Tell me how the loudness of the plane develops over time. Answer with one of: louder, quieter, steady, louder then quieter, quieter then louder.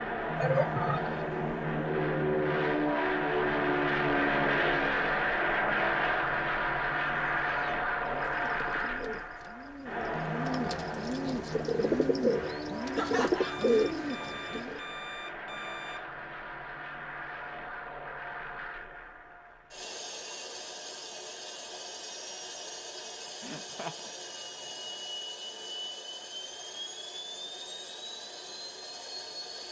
quieter.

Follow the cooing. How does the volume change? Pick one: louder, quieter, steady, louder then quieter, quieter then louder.
louder.